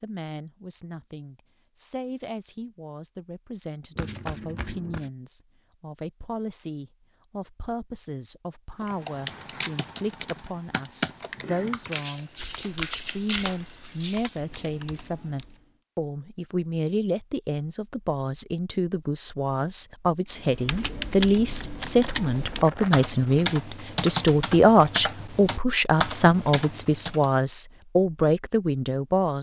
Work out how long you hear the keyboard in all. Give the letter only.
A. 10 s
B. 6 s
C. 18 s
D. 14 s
D.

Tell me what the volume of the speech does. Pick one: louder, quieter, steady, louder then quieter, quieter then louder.
louder.